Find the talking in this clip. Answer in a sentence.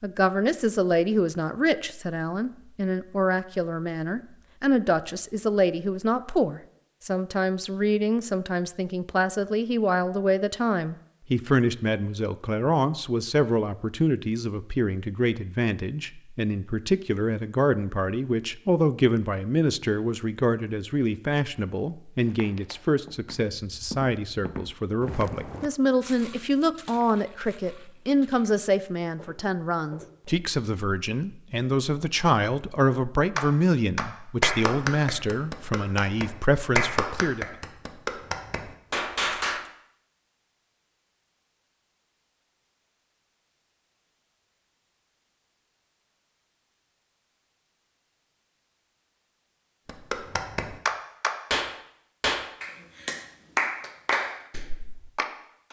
You can hear the talking from 0.0 to 37.5 s.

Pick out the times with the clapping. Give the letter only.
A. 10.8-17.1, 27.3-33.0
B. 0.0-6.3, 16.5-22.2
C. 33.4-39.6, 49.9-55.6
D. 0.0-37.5
C.